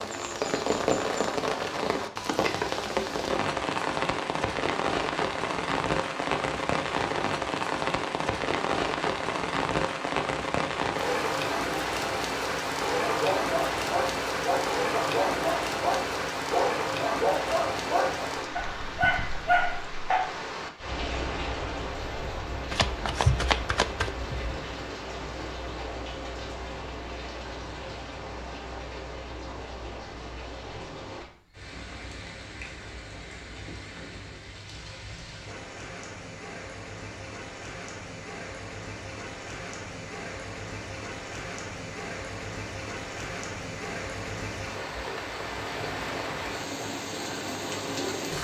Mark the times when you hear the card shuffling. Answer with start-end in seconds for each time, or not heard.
22.7-24.6.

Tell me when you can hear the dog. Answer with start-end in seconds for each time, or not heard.
13.0-20.3.